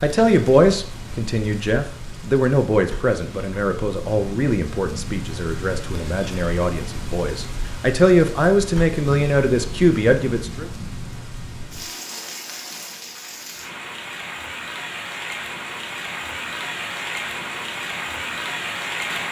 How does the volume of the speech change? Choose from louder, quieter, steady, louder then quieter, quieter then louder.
quieter then louder.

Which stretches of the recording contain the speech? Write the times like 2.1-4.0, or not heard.
0.0-10.7.